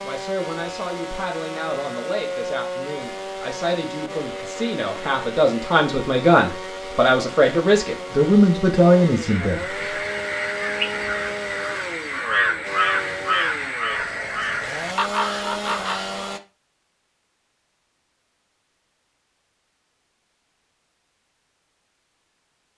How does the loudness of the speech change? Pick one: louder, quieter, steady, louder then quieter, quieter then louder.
louder.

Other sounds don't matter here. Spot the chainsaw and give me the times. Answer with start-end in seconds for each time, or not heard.
0.0-16.4.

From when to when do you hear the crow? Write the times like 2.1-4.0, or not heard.
9.2-16.3.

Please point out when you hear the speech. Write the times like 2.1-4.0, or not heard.
0.0-9.7.